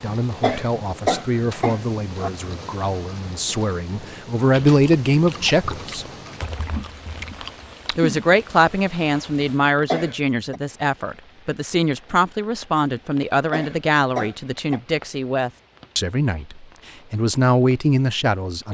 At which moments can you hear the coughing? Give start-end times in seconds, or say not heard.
0.4-2.3, 9.8-10.6, 13.5-14.8.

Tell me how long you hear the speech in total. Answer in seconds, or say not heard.
17 s.